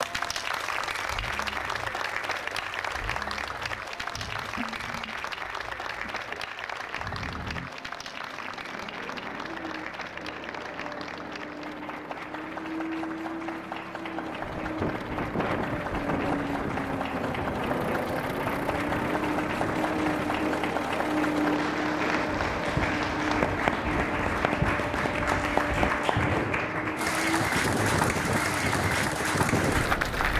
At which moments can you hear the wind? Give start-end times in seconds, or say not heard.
14.4-30.3.